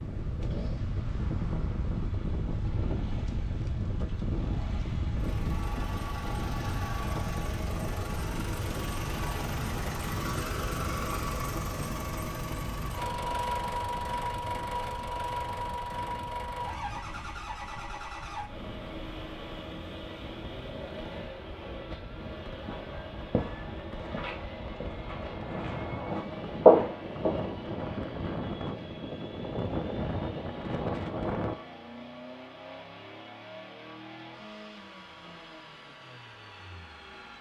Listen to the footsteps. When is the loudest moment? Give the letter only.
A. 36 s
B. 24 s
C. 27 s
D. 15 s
C.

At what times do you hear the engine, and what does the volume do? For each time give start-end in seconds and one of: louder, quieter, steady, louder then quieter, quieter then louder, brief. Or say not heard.
0.2-37.3 louder then quieter.